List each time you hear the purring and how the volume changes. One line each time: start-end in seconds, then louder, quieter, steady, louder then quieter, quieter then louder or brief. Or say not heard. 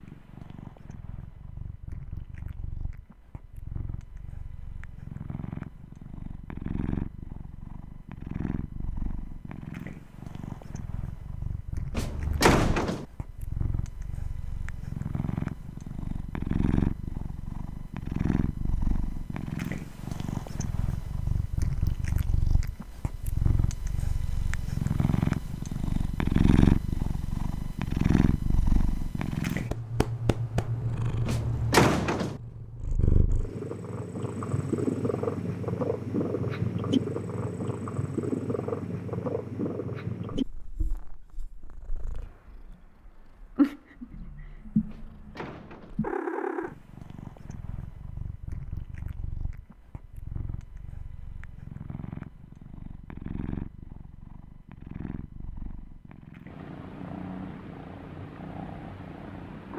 0.0-59.7 louder then quieter.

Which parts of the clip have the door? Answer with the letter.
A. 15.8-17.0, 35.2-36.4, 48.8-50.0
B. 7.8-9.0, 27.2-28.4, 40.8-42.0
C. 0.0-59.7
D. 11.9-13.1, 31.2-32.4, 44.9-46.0
D.